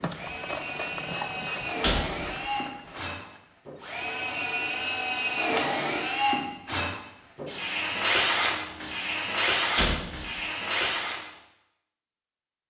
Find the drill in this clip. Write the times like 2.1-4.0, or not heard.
0.1-11.2.